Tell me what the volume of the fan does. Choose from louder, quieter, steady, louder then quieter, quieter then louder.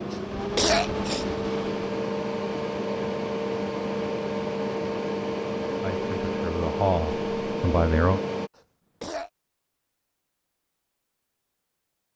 steady.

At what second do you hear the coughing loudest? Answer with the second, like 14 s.
1 s.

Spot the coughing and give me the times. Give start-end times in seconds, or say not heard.
0.1-1.2, 8.6-9.3.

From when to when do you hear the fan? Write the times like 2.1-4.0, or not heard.
0.0-8.5.